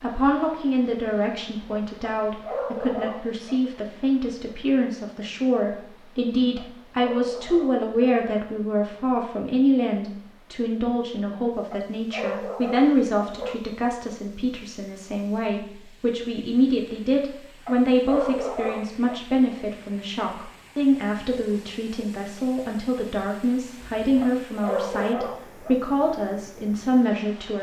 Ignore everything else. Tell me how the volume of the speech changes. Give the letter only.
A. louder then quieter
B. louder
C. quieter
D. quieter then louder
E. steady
E.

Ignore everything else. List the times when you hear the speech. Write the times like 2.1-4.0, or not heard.
0.0-27.5.